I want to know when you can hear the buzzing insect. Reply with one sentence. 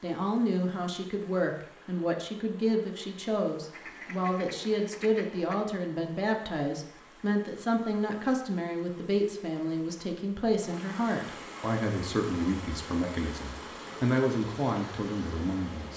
You can't hear the buzzing insect here.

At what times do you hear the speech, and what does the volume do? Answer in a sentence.
You can hear the speech from 0.0 to 15.9 s, at a steady volume.